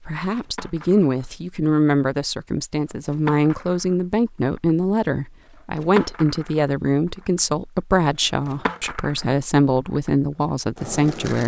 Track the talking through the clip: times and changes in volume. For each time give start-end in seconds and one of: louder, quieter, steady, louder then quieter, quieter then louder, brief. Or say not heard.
0.1-11.4 steady.